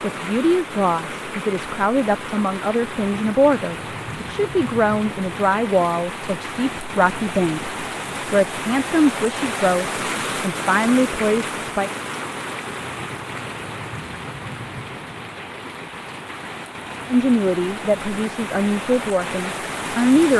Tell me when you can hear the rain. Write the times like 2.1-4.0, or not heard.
0.0-20.3.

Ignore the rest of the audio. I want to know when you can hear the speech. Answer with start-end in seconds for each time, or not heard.
0.0-11.9, 17.1-20.3.